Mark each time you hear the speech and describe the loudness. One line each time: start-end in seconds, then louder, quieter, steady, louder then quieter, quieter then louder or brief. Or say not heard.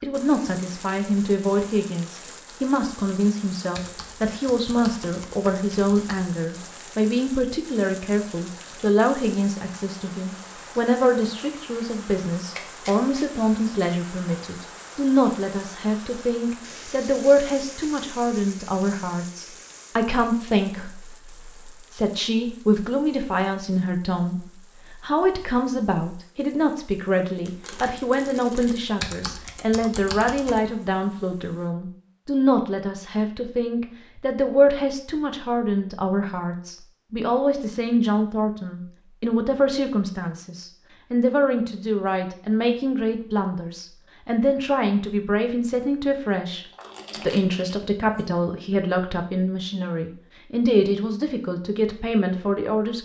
0.0-53.0 steady.